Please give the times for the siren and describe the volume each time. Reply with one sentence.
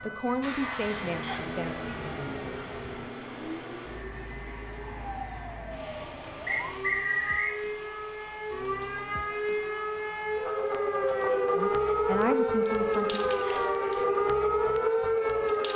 You can hear the siren from 0.0 to 15.7 s, getting louder.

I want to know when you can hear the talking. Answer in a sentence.
The talking can be heard from 0.0 to 1.8 s and from 11.6 to 13.2 s.